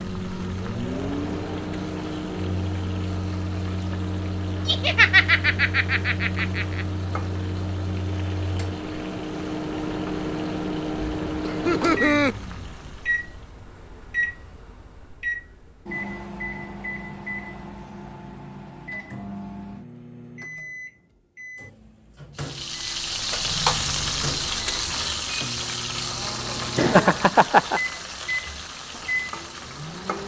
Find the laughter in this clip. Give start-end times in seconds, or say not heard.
4.7-6.8, 11.4-12.3, 26.8-27.8.